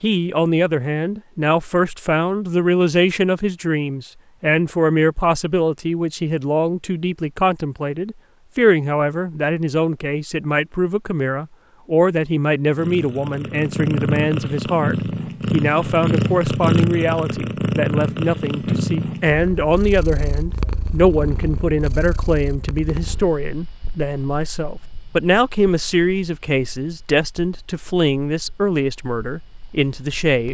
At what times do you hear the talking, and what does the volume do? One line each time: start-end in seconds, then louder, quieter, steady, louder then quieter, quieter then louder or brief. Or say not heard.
0.0-30.5 steady.